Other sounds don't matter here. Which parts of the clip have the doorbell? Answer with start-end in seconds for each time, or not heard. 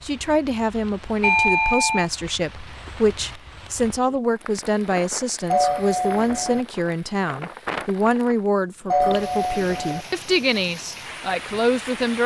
1.2-2.1, 5.5-6.7, 8.9-10.1.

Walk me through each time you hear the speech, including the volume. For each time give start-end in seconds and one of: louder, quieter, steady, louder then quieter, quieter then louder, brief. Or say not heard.
0.0-12.2 steady.